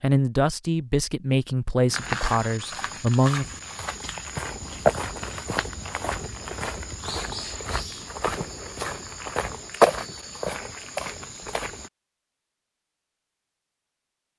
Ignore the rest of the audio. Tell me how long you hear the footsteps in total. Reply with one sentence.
You can hear the footsteps for 10 seconds altogether.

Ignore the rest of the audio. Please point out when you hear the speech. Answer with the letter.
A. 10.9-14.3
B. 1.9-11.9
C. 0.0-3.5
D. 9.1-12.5
C.